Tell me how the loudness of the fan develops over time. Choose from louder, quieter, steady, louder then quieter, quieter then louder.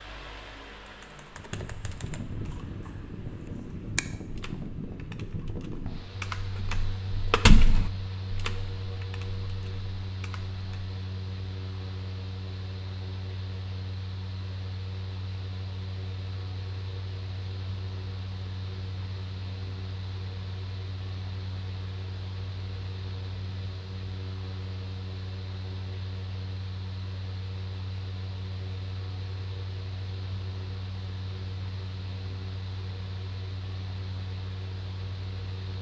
steady.